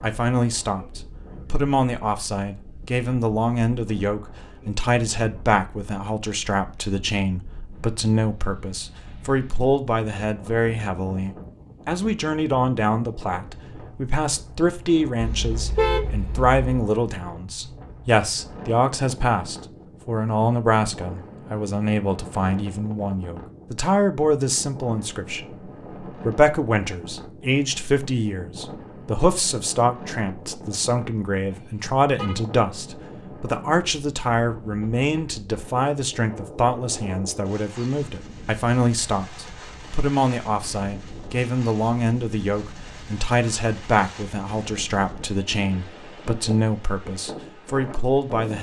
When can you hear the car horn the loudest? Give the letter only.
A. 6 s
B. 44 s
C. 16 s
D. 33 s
C.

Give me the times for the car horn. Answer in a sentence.
You can hear the car horn from 15.2 to 16.7 s and from 31.5 to 32.4 s.